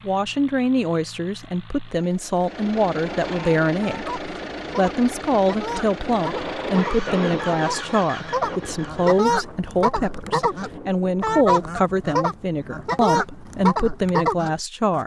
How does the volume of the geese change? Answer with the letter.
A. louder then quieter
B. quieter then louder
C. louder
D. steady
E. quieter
C.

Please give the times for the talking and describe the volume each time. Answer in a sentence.
You can hear the talking from 0.1 to 15.0 s, at a steady volume.